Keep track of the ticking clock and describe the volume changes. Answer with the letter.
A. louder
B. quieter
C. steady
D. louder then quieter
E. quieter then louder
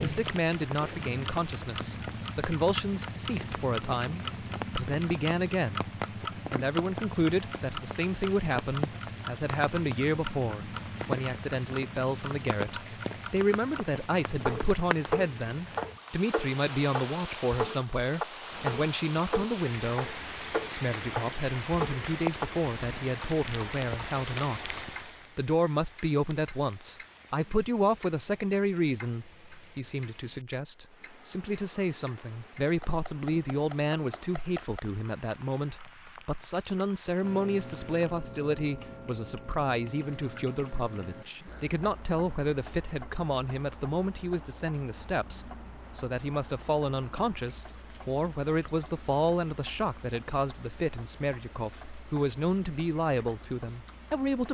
B.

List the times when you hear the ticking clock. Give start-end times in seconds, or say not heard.
0.0-54.5.